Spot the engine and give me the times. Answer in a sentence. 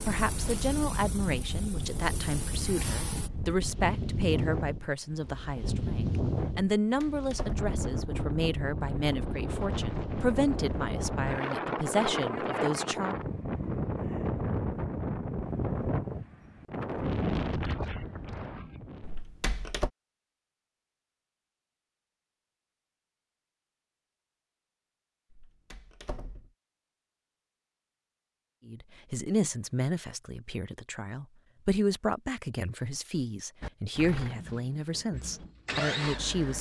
You can hear the engine from 0.0 to 3.3 s and from 33.6 to 36.5 s.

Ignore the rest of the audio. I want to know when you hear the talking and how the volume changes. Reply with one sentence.
You can hear the talking from 0.0 to 13.2 s, at a steady volume; and from 28.6 to 36.5 s, at a steady volume.